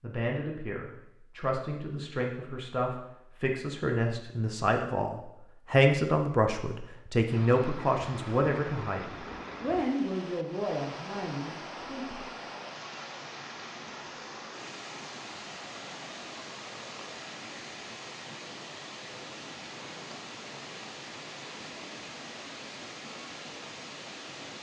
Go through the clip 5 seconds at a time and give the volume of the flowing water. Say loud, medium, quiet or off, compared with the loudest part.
off, loud, loud, loud, loud.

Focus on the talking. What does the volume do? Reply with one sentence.
The loudness of the talking goes up, then down.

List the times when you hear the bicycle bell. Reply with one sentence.
You can't hear the bicycle bell here.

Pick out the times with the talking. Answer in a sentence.
You can hear the talking from 0.0 to 12.2 s.